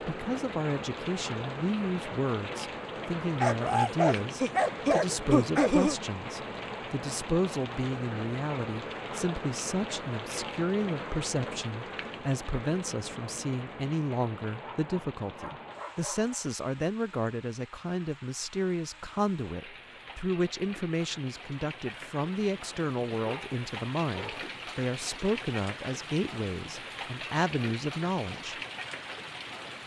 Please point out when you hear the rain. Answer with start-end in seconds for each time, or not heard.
0.0-29.8.